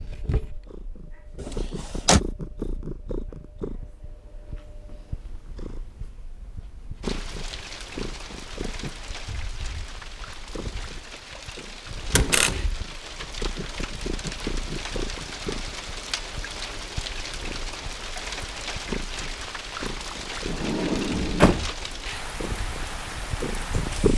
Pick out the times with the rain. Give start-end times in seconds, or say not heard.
7.0-24.1.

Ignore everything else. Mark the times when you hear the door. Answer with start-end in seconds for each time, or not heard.
1.4-2.2, 12.2-12.8, 20.4-21.6.